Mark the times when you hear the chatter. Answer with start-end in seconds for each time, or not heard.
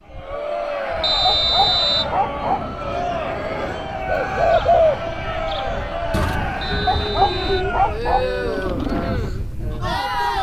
0.1-10.3.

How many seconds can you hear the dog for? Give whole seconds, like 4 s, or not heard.
3 s.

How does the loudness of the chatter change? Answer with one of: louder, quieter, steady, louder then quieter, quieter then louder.
steady.